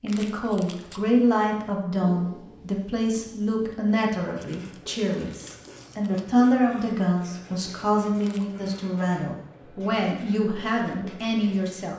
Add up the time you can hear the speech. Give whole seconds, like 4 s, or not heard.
12 s.